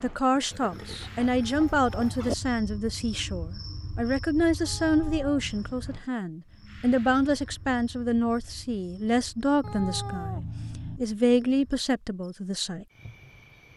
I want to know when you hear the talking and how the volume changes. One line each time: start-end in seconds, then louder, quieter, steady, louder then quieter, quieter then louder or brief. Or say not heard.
0.0-12.8 steady.